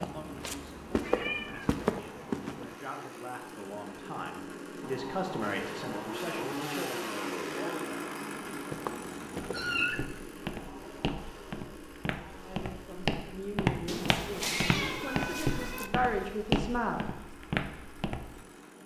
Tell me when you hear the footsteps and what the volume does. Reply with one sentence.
The footsteps can be heard briefly from 0.0 to 2.8 s; and from 8.5 to 18.4 s, getting louder.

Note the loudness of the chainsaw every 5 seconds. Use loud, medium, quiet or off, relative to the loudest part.
medium, loud, medium, quiet.